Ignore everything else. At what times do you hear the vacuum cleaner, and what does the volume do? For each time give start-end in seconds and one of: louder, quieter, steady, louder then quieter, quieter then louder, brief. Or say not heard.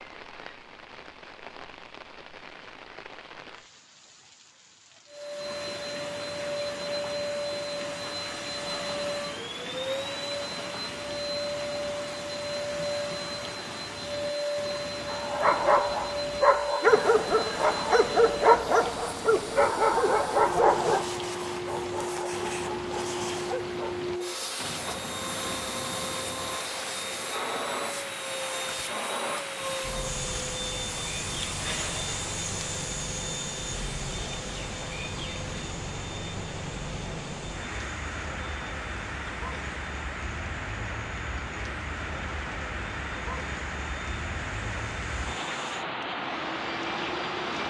5.1-47.6 quieter.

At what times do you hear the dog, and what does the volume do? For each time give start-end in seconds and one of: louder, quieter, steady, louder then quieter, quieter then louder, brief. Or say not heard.
15.1-24.1 quieter.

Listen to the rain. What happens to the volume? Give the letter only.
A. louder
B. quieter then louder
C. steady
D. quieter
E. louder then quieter
A.